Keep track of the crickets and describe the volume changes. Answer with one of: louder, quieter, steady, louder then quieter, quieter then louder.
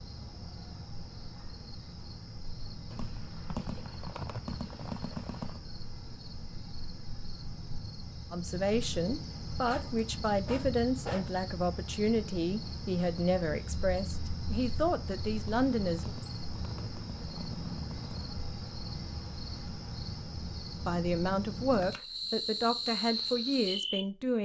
louder.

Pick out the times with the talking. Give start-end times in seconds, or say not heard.
8.3-16.1, 20.9-24.4.